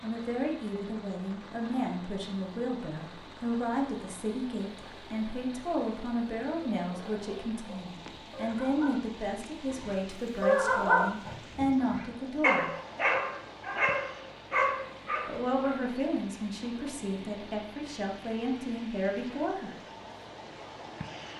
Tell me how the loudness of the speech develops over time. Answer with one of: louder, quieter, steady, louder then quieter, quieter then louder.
steady.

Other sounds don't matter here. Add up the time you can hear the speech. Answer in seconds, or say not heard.
17 s.